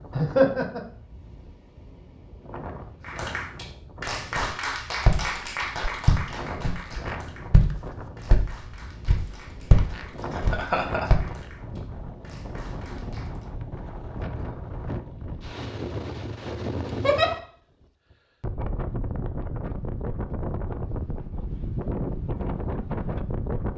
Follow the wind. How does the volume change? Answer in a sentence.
The loudness of the wind goes up.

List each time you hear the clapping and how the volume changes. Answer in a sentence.
The clapping can be heard from 3.0 to 13.5 s, getting quieter.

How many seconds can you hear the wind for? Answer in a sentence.
You can hear the wind for 24 seconds altogether.